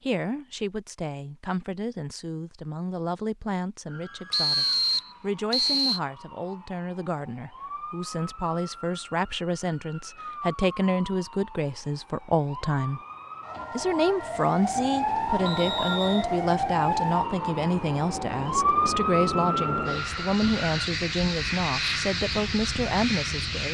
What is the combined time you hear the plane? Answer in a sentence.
You can hear the plane for 9 seconds altogether.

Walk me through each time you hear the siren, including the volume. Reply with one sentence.
The siren can be heard from 3.9 to 20.9 s, getting louder.